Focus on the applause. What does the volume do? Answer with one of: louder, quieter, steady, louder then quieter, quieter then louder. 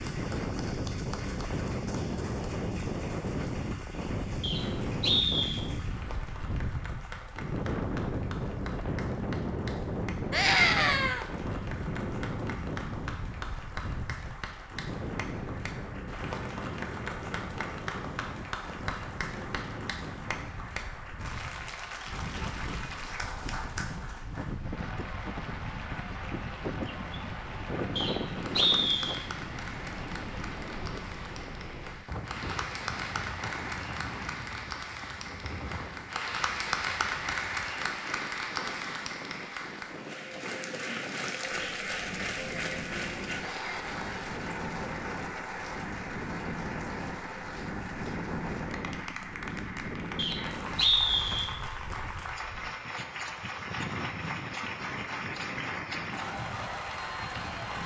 louder.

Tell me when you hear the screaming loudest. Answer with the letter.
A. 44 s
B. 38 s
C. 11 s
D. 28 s
C.